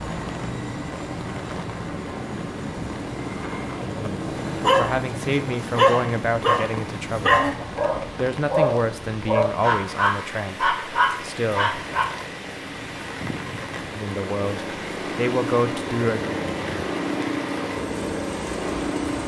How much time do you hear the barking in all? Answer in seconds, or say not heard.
8 s.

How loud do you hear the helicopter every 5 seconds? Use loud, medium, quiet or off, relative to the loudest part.
loud, medium, medium, loud.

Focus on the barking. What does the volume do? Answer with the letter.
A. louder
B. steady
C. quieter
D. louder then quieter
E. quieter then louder
B.